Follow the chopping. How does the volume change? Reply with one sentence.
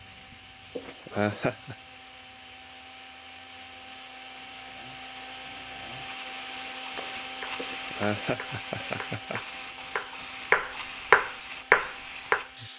The loudness of the chopping goes up.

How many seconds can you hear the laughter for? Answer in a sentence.
You can hear the laughter for 3 seconds altogether.